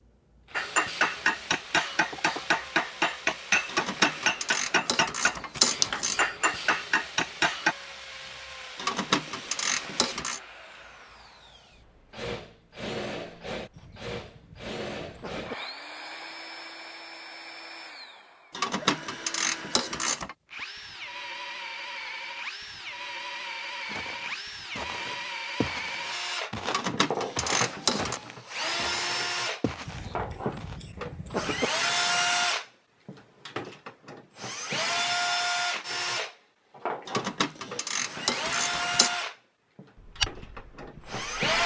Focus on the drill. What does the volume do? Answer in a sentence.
The loudness of the drill goes up.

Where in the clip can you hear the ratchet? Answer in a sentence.
The ratchet can be heard from 3.6 to 6.2 s, from 8.8 to 10.4 s, from 18.5 to 20.4 s, from 26.6 to 28.2 s and from 37.0 to 39.1 s.